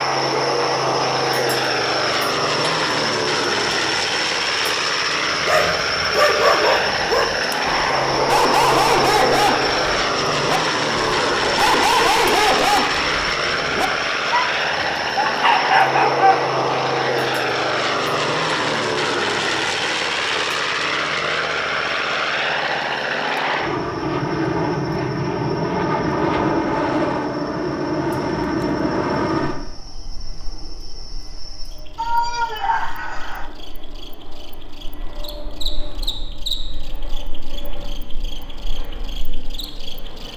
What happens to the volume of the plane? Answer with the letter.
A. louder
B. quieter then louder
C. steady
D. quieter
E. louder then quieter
D.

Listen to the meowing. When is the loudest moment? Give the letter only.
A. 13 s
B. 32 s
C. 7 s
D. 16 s
B.